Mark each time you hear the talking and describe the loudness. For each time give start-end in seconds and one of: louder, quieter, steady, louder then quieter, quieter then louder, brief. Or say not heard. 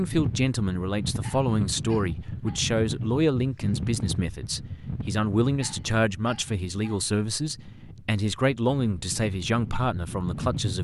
0.0-10.7 steady.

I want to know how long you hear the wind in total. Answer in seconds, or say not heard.
11 s.